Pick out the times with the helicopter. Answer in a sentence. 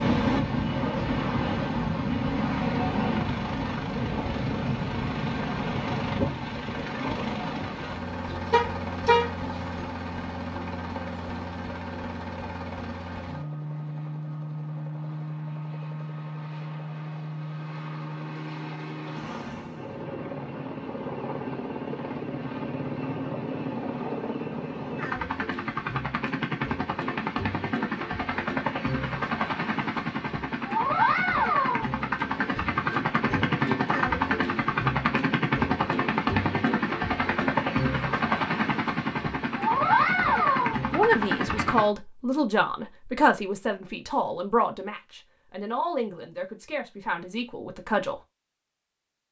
You can hear the helicopter from 0.0 to 41.9 s.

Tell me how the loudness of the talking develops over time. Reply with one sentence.
The loudness of the talking goes down.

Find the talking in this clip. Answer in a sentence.
The talking can be heard from 40.9 to 48.2 s.